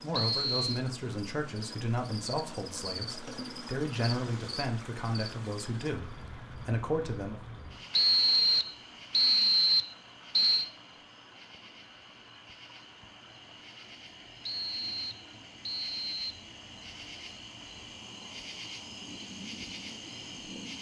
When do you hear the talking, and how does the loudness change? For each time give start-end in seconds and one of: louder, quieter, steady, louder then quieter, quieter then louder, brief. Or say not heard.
0.0-7.4 steady.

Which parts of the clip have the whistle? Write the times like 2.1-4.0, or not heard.
0.1-0.8, 7.9-10.7, 14.4-16.2.